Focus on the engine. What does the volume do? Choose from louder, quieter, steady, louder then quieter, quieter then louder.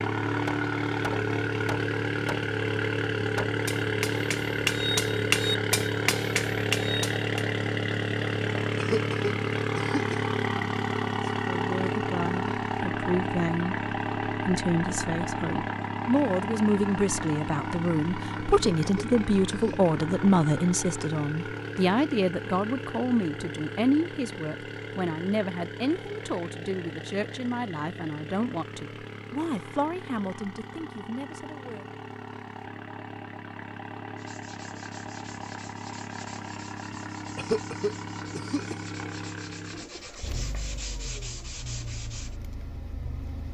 quieter.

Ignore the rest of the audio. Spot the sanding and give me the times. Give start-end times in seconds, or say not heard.
34.1-42.4.